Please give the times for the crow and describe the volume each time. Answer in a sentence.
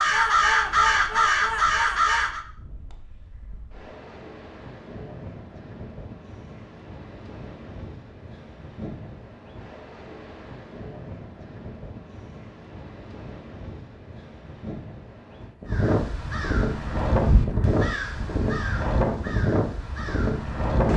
The crow can be heard briefly from 0.0 to 2.5 s; and from 15.7 to 20.9 s, getting louder then quieter.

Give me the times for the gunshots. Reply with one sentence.
The gunshots can't be heard in this clip.